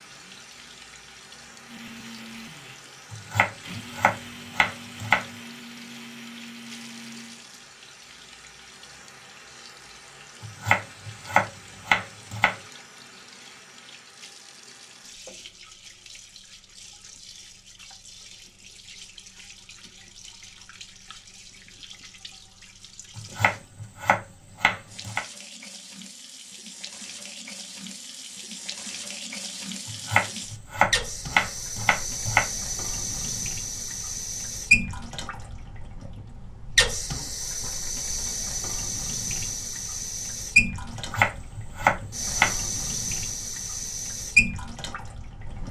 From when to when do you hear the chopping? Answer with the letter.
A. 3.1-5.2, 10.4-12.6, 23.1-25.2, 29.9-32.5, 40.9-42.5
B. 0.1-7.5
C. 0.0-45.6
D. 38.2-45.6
A.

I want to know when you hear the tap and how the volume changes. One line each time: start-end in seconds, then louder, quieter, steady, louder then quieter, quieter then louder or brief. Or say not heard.
0.0-45.6 louder.